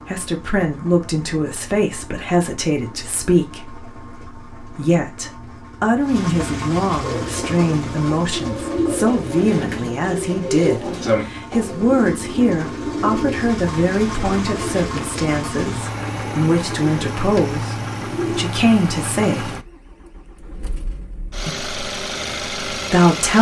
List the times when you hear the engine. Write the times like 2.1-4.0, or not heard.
0.0-23.3.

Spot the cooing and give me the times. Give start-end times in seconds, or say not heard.
7.0-18.5.